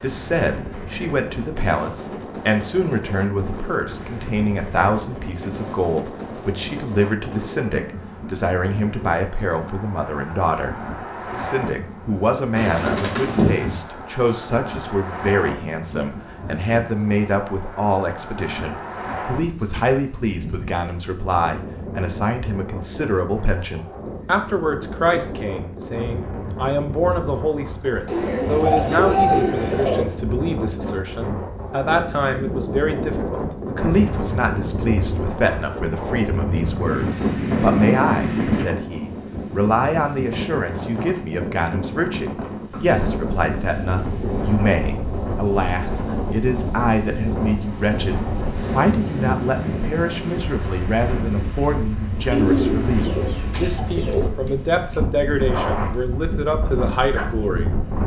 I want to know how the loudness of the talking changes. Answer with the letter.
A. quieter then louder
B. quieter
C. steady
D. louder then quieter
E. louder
C.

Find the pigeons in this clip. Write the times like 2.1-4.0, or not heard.
12.6-13.8, 28.1-30.1, 52.3-54.3.